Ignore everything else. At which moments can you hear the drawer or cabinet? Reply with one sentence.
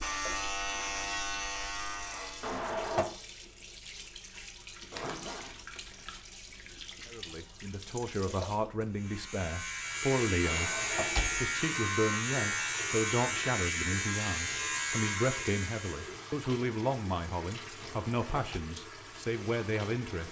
You can hear the drawer or cabinet from 2.4 to 3.1 s, from 10.4 to 11.5 s and from 17.8 to 18.6 s.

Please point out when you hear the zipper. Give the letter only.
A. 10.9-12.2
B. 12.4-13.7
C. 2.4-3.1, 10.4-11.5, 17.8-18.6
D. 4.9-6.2
D.